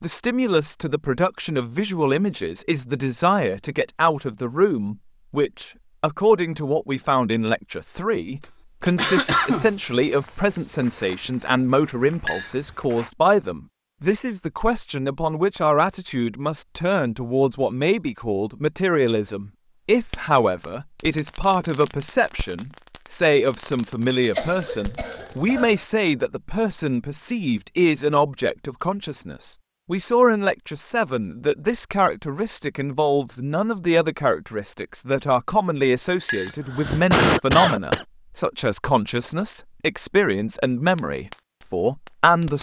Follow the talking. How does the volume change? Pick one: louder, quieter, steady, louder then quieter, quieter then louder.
steady.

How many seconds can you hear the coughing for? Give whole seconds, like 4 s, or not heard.
4 s.